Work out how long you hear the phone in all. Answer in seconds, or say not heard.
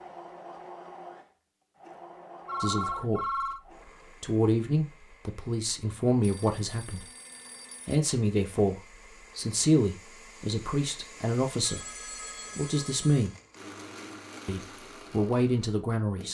5 s.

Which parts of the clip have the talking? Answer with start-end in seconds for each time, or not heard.
2.6-3.5, 4.2-7.1, 7.8-11.8, 12.6-13.3, 14.4-16.2.